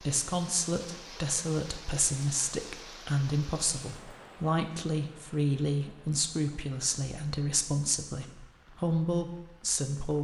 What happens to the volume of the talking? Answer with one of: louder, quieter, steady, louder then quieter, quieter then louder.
steady.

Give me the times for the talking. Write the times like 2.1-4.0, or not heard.
0.0-10.2.